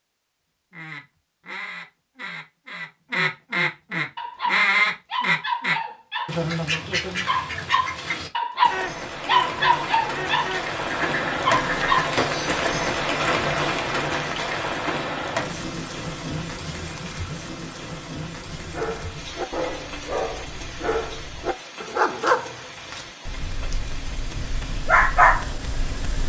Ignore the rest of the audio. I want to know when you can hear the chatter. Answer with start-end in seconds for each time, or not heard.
not heard.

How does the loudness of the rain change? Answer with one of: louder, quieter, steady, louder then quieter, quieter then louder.
quieter.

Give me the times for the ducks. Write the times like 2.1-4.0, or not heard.
0.7-12.1.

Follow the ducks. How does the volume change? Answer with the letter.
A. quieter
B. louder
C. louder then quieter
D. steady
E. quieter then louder
C.